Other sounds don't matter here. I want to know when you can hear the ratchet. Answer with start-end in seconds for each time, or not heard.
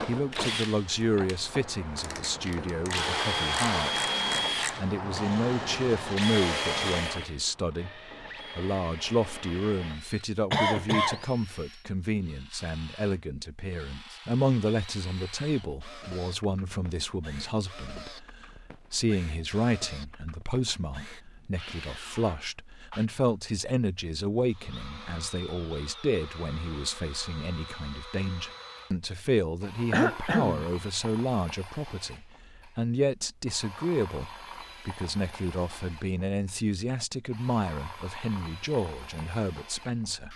1.9-4.8.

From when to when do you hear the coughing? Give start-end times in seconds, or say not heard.
10.5-11.2, 29.9-30.6.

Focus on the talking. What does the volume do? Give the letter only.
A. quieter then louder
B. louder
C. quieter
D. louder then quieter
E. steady
E.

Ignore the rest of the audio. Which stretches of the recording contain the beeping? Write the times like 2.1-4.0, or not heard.
not heard.